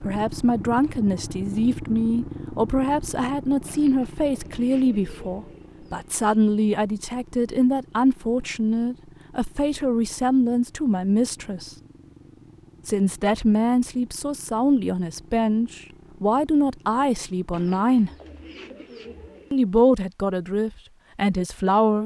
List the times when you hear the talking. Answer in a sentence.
The talking can be heard from 0.0 to 11.7 s, from 12.8 to 18.1 s and from 19.5 to 22.0 s.